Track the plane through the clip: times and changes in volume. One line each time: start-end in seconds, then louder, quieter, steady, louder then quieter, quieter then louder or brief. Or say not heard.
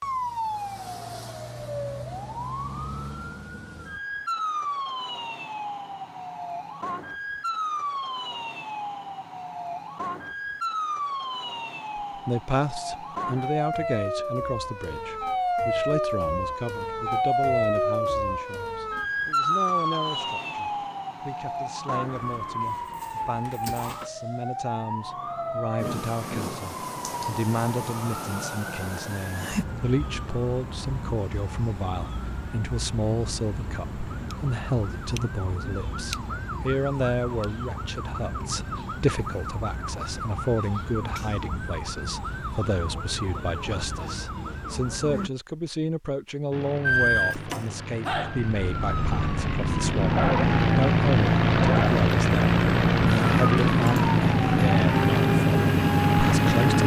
46.5-56.8 louder.